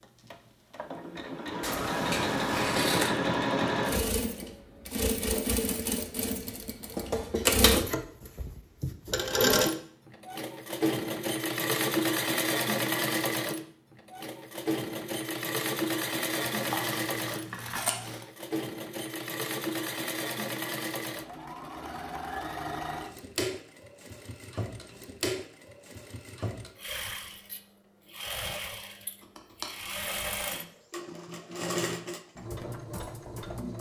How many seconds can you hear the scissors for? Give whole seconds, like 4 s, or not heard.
4 s.